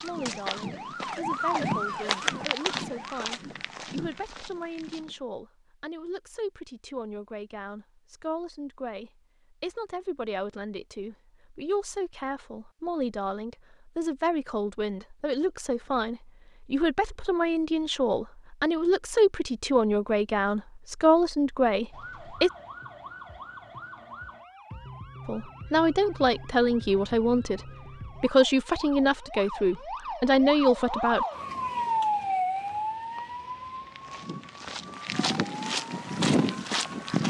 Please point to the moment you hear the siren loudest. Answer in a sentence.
The volume of the siren peaks at 32 seconds.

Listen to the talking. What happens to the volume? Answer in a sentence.
The volume of the talking goes up.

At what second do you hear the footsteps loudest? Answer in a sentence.
The loudest moment of the footsteps is at 36 seconds.